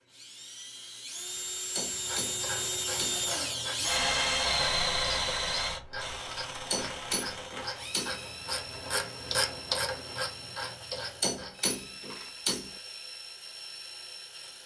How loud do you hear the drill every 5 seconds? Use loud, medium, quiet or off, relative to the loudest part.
loud, medium, quiet.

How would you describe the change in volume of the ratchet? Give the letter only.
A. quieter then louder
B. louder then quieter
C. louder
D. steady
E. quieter
C.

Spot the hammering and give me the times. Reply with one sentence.
You can hear the hammering from 1.8 to 3.2 s, from 6.7 to 8.2 s and from 11.2 to 12.7 s.